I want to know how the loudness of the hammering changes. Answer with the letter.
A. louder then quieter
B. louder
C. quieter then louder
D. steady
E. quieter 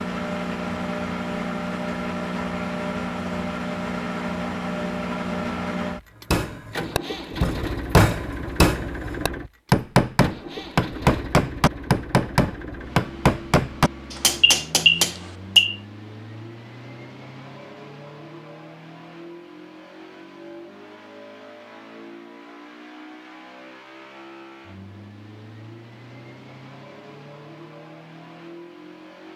D.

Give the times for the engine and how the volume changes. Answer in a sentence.
The engine can be heard from 0.0 to 29.3 s, getting quieter.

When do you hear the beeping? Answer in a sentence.
The beeping can be heard from 14.2 to 15.8 s.